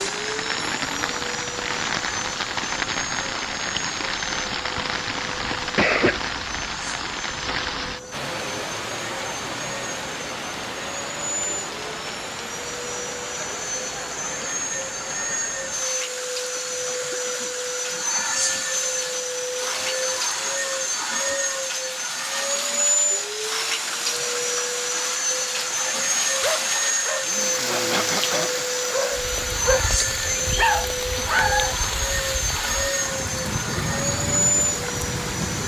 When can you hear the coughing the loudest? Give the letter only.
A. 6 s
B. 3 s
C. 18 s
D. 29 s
A.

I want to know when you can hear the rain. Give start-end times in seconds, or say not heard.
0.0-35.6.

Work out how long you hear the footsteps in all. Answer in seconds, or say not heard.
not heard.